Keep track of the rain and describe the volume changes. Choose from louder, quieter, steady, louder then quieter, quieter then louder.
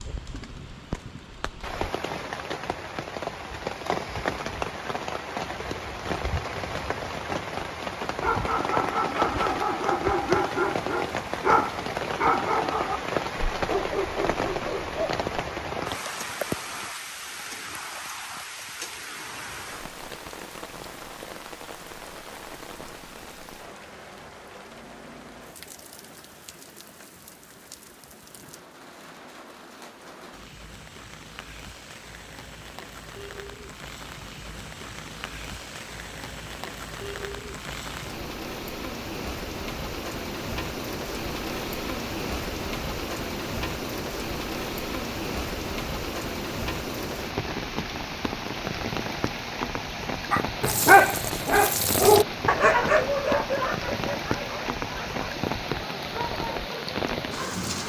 quieter then louder.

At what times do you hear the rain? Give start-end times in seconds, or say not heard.
0.0-57.8.